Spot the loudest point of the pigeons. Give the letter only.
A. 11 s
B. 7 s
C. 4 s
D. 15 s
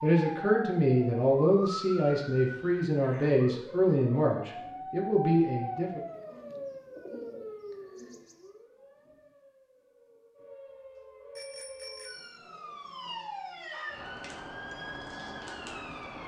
B.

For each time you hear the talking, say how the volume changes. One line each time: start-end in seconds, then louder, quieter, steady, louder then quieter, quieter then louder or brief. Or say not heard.
0.0-6.0 steady.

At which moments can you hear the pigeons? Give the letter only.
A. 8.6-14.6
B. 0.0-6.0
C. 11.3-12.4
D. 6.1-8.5
D.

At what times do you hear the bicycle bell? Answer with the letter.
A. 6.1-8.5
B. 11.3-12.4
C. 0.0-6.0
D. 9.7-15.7
B.